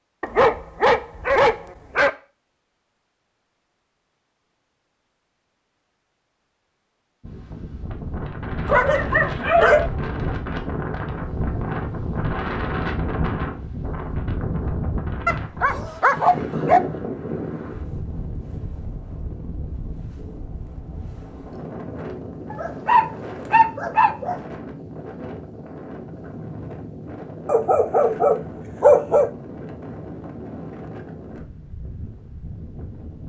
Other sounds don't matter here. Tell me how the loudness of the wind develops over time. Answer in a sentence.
The volume of the wind goes down.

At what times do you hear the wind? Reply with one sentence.
You can hear the wind from 7.2 to 33.2 s.